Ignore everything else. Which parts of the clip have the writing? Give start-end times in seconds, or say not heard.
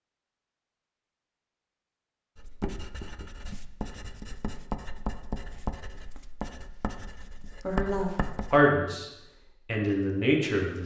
2.4-8.7.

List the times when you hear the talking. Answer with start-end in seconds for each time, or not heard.
7.7-10.8.